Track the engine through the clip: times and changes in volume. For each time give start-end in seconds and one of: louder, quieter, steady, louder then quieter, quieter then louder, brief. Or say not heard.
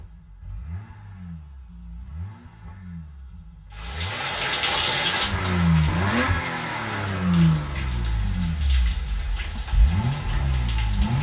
0.0-11.1 louder then quieter.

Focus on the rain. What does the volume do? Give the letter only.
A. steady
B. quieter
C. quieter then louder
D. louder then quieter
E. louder
B.